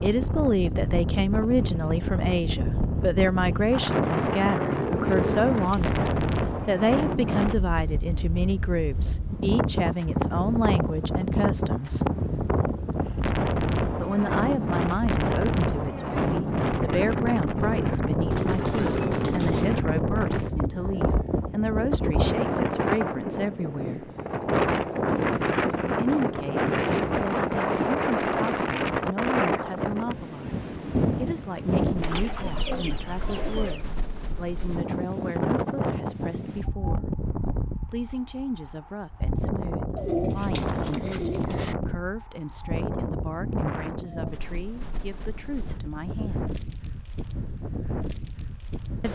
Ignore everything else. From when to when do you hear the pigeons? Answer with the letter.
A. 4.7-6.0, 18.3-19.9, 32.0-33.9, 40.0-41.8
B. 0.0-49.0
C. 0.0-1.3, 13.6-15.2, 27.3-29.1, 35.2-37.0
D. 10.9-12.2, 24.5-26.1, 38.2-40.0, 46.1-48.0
A.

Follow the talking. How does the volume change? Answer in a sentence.
The loudness of the talking goes down.